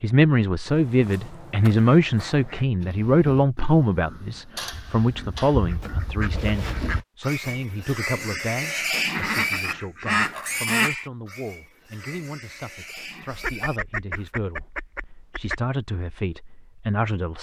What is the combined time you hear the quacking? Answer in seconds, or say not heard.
9 s.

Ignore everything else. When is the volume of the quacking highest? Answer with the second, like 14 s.
10 s.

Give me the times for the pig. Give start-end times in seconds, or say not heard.
2.8-14.3.